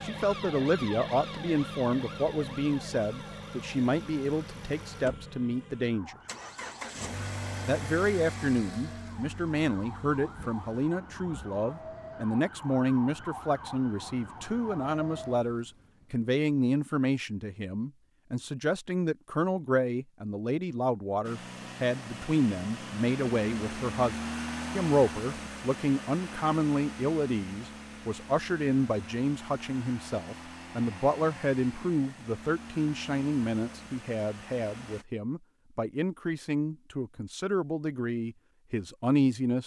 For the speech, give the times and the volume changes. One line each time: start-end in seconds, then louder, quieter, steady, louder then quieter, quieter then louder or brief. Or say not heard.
0.0-6.2 steady
7.7-39.6 steady.